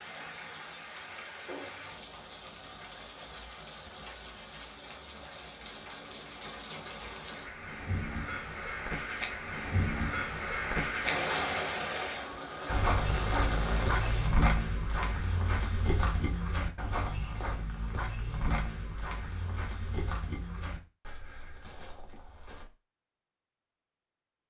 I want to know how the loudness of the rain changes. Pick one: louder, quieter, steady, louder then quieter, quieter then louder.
louder.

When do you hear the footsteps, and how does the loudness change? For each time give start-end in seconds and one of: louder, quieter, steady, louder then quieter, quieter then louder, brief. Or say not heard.
12.7-22.6 quieter.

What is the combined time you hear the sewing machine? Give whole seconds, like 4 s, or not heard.
not heard.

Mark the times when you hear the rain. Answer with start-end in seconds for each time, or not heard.
0.0-14.3.